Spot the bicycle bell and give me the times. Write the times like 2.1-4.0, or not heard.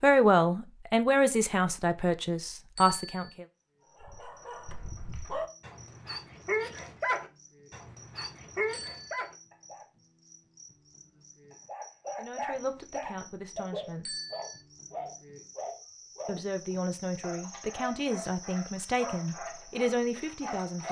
2.8-3.3, 8.7-9.2, 14.1-14.6.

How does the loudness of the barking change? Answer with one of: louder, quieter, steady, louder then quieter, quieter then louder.
louder then quieter.